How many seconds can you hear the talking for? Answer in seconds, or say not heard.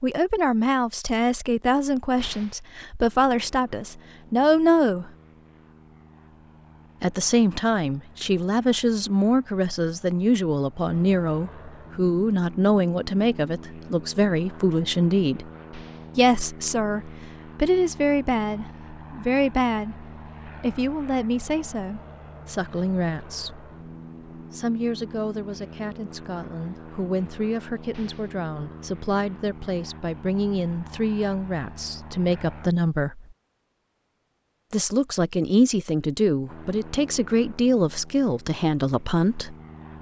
35 s.